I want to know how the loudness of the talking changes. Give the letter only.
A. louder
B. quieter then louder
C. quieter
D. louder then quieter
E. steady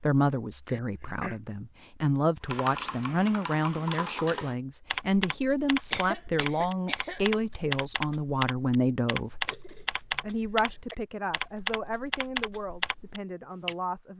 C.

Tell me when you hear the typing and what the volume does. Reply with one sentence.
The typing can be heard from 2.5 to 13.8 s, at a steady volume.